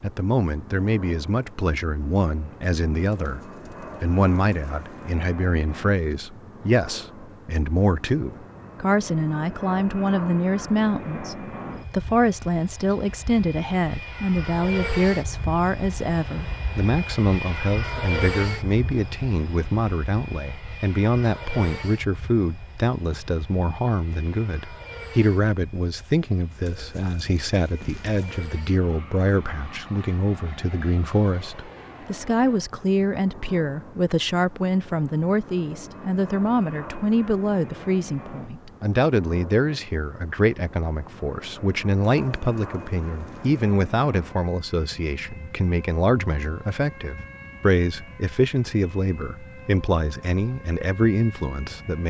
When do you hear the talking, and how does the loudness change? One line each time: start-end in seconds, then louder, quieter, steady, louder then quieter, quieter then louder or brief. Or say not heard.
0.0-52.0 steady.